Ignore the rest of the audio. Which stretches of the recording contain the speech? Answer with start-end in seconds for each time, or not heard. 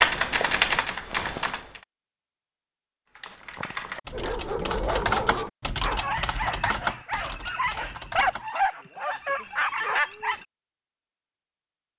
not heard.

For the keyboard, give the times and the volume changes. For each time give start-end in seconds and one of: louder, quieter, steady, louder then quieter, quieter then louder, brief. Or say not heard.
0.0-1.8 brief
3.1-9.1 louder then quieter.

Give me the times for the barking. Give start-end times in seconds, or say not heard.
4.1-10.4.